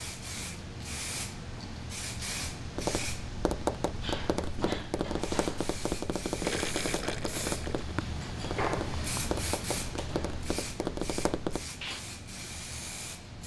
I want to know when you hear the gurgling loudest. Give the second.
7 s.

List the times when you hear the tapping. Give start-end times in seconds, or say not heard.
2.7-11.7.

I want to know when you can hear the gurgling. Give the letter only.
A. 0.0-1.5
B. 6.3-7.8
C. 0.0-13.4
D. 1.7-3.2
B.